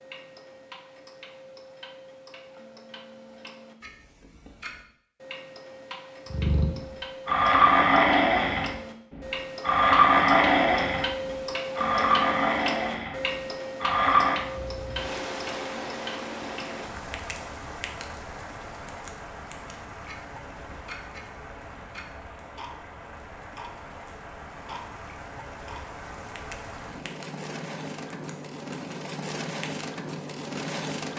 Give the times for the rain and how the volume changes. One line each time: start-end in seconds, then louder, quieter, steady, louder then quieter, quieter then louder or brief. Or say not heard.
14.3-31.1 quieter then louder.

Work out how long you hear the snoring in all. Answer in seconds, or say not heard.
8 s.